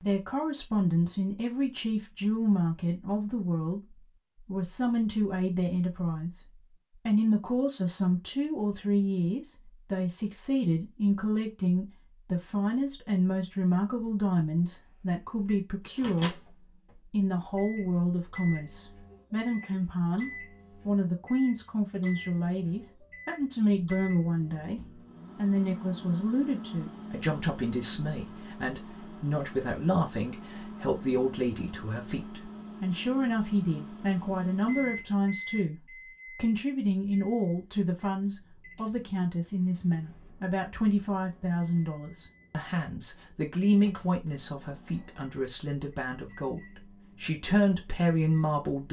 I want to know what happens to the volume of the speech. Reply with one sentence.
The volume of the speech stays about the same.